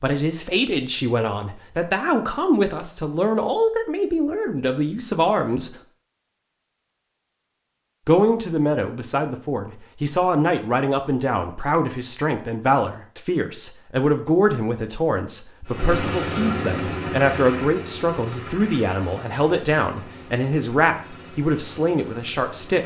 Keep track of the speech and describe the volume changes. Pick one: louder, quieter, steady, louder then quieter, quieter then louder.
steady.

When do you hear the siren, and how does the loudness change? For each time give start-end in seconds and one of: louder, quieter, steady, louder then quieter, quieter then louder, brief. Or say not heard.
not heard.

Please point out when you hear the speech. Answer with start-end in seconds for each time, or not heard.
0.0-5.8, 8.1-22.8.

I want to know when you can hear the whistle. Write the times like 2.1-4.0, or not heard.
not heard.